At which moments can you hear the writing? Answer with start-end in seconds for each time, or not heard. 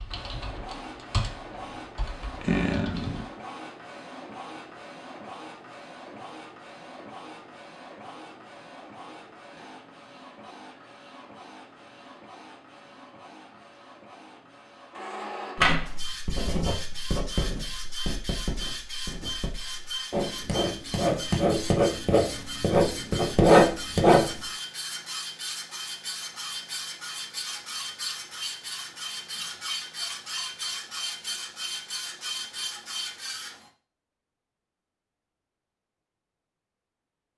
15.6-24.4.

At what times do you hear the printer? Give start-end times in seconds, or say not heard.
0.1-33.7.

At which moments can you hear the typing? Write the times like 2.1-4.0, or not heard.
0.0-3.2.